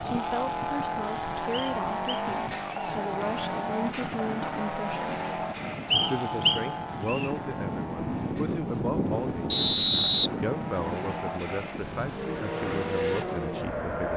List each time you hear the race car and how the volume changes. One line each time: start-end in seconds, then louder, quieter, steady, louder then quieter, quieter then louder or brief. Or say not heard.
0.0-14.1 quieter then louder.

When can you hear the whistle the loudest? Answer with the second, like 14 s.
10 s.